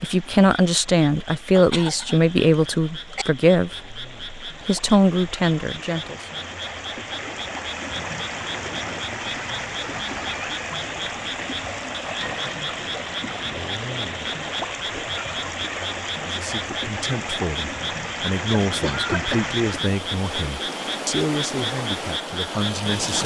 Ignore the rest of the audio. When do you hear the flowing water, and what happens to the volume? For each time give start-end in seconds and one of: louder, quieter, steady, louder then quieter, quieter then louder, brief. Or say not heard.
0.0-23.2 louder.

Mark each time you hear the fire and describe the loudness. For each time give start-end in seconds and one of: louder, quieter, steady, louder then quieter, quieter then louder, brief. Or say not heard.
not heard.